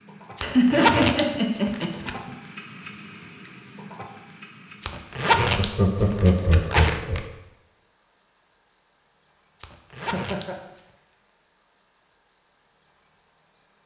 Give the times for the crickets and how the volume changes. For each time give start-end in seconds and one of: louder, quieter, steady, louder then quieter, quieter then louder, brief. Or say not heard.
0.0-13.8 quieter.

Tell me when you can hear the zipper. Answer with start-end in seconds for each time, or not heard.
0.3-2.1, 4.8-7.2, 9.6-10.8.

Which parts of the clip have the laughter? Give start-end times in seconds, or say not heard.
0.4-2.4, 5.3-7.2, 10.0-10.6.